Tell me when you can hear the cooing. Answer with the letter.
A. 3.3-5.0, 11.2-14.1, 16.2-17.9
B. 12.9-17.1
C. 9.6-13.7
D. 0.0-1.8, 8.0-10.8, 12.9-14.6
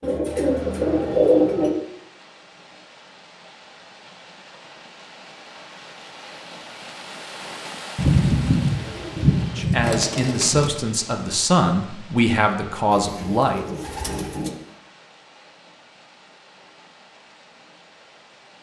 D.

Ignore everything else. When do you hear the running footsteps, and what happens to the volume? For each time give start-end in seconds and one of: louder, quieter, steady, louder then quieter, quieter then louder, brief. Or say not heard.
not heard.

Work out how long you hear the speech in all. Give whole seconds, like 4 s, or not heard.
4 s.